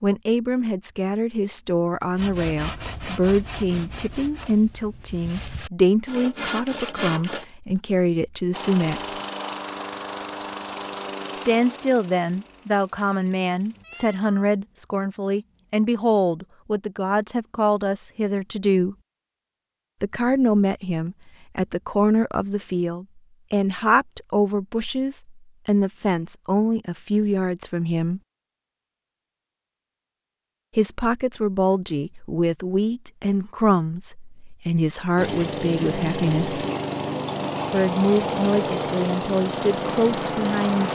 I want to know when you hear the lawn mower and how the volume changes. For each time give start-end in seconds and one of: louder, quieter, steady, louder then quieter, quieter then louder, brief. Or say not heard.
8.5-13.8 quieter
35.1-40.9 steady.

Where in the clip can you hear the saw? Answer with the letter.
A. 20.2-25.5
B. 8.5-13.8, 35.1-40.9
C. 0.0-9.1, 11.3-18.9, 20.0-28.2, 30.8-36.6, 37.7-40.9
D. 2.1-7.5
D.